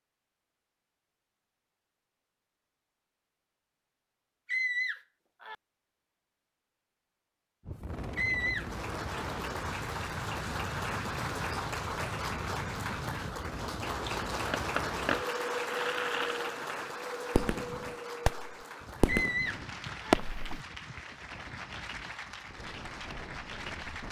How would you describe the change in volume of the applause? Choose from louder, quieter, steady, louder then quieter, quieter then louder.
quieter.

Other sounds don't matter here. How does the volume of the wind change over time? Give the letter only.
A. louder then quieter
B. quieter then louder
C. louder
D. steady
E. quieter
E.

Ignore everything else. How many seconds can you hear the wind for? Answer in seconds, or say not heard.
16 s.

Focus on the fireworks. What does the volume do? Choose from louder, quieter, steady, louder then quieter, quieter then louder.
louder.